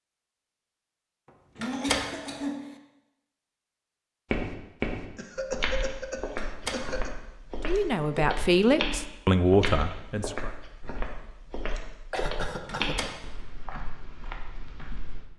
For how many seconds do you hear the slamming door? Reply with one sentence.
You can hear the slamming door for 2 seconds altogether.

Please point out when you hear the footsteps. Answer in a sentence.
The footsteps can be heard from 4.3 to 15.2 s.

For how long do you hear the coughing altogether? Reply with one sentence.
The coughing can be heard for 4 seconds in total.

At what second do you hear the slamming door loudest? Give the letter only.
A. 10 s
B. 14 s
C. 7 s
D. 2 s
D.